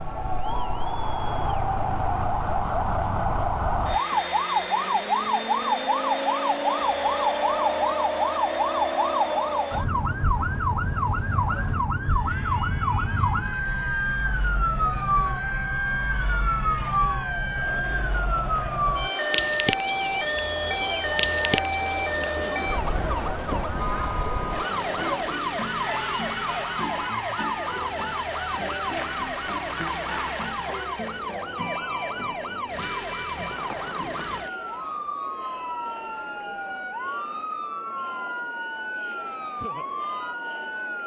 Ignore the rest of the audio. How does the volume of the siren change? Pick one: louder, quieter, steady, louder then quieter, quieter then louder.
quieter.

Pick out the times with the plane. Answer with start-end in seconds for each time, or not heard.
not heard.